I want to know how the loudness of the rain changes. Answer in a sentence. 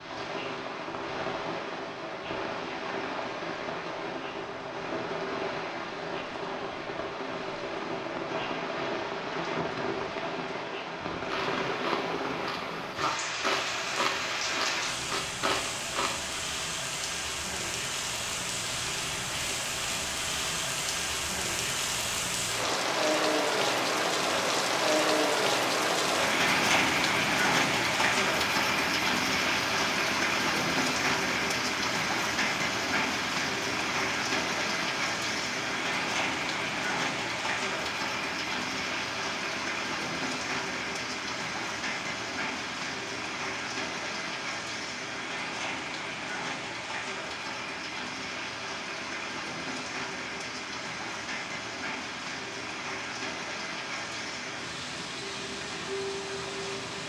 The volume of the rain goes up, then down.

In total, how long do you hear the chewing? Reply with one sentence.
You can hear the chewing for 5 seconds altogether.